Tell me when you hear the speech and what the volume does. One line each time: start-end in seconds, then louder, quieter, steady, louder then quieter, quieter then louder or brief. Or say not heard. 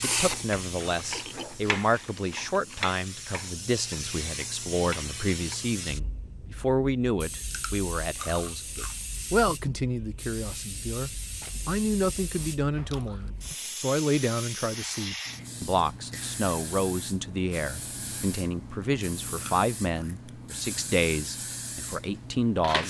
0.0-22.8 steady.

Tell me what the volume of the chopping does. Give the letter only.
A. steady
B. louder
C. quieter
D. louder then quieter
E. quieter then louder
E.